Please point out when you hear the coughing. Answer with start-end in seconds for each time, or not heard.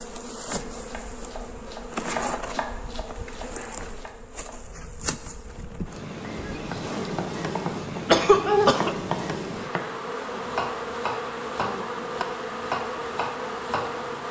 8.1-8.9.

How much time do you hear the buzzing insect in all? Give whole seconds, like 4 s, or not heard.
14 s.